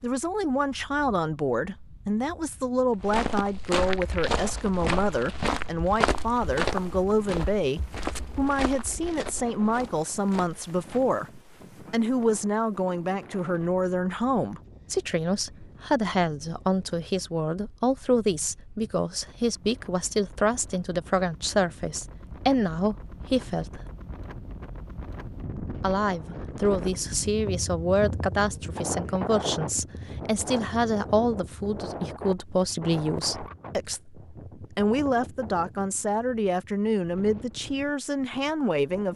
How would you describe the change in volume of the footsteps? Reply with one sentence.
The loudness of the footsteps goes down.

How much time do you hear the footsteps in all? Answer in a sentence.
The footsteps can be heard for 8 seconds in total.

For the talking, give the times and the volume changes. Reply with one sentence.
The talking can be heard from 0.0 to 23.8 s, at a steady volume; and from 25.8 to 39.1 s, at a steady volume.